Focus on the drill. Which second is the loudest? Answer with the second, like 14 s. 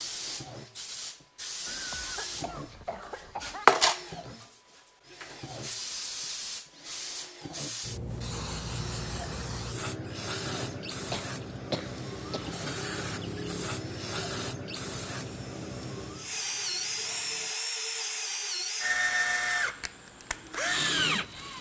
19 s.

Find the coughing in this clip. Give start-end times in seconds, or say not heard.
1.6-3.6, 11.1-12.6.